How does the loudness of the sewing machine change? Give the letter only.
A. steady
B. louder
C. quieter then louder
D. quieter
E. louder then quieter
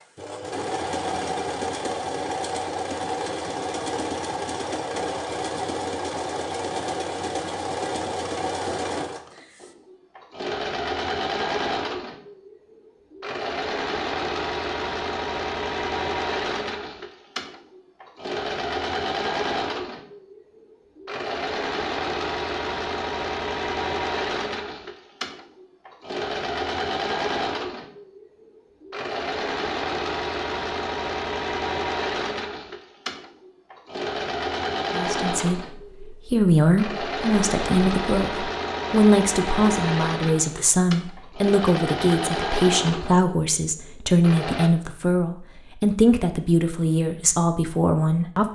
A.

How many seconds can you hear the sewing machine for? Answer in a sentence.
The sewing machine can be heard for 45 seconds in total.